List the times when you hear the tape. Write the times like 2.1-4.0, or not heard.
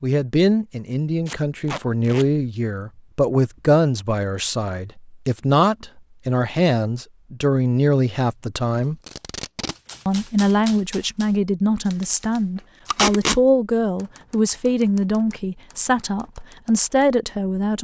1.2-2.2, 9.1-9.8, 12.9-13.4.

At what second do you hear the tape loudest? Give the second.
13 s.